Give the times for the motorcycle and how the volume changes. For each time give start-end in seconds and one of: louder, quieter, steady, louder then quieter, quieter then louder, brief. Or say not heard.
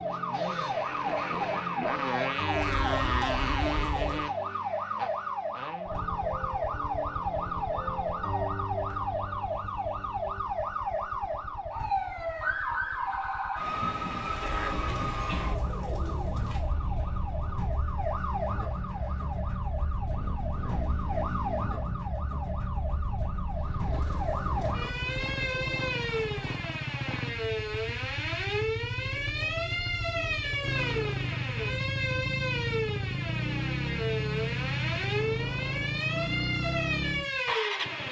0.1-38.0 quieter then louder.